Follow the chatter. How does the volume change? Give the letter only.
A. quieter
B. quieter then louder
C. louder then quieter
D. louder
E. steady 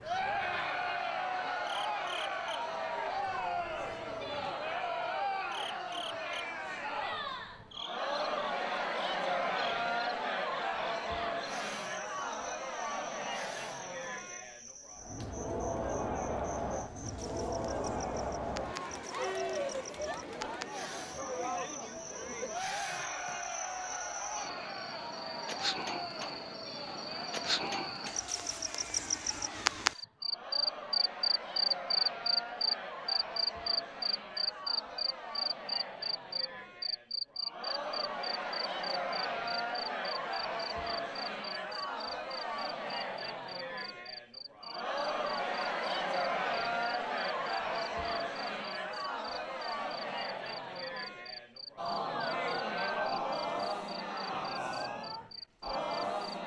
B.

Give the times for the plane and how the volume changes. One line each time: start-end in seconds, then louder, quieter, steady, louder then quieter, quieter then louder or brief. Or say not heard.
not heard.